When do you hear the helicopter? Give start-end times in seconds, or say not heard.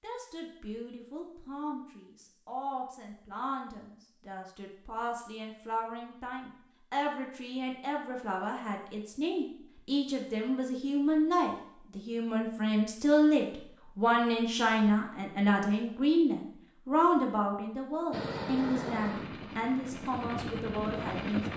18.1-21.5.